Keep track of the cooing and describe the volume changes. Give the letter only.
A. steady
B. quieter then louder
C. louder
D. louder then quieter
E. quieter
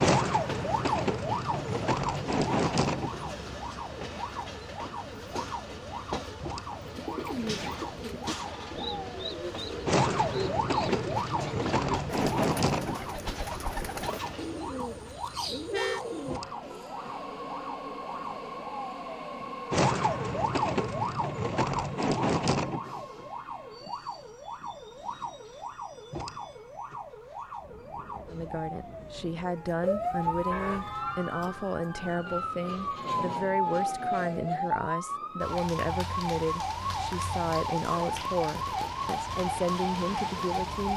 A.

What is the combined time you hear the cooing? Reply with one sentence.
You can hear the cooing for 10 seconds altogether.